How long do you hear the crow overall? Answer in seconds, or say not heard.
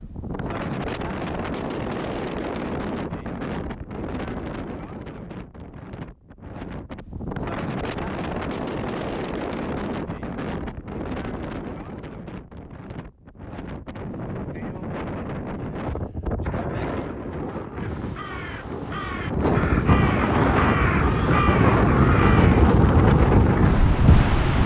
6 s.